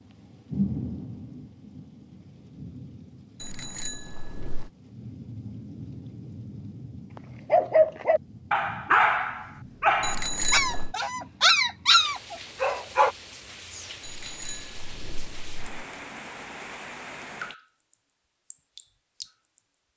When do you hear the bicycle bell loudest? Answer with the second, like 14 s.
10 s.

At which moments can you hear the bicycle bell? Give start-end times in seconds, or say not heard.
3.4-4.7, 10.0-10.9, 14.0-15.8.